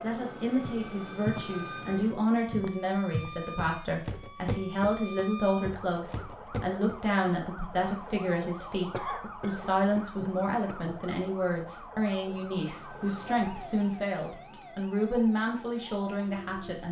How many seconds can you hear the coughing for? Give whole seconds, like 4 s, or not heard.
2 s.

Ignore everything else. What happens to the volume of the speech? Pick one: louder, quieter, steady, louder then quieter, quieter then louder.
steady.